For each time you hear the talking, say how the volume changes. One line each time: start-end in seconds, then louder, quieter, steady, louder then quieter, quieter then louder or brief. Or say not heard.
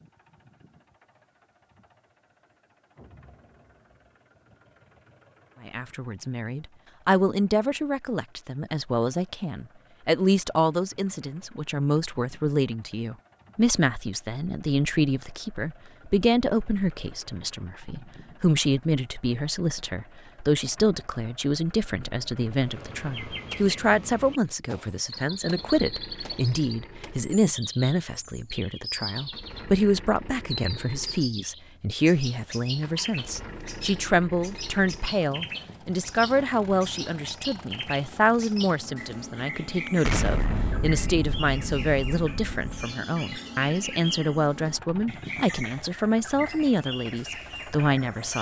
5.7-48.3 steady.